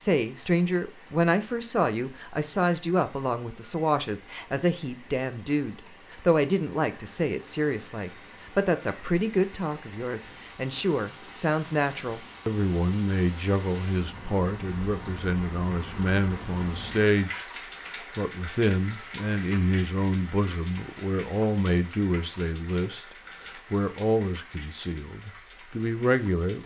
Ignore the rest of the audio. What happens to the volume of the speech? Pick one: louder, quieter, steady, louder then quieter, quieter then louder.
steady.